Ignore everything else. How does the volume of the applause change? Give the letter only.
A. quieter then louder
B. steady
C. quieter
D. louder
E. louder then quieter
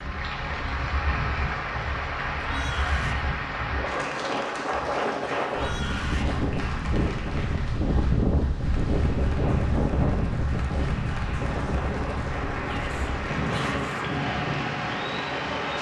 A.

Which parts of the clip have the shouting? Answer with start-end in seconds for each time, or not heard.
2.4-3.2, 5.5-6.3, 12.6-13.9.